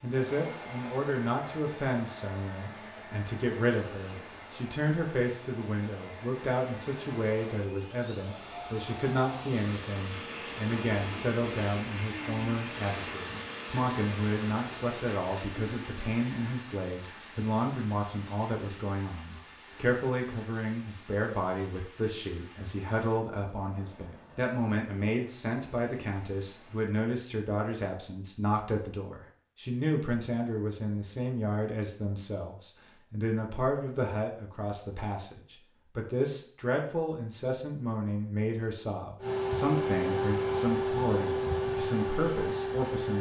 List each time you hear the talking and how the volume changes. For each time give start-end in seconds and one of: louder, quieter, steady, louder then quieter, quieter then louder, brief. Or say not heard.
0.0-43.1 steady.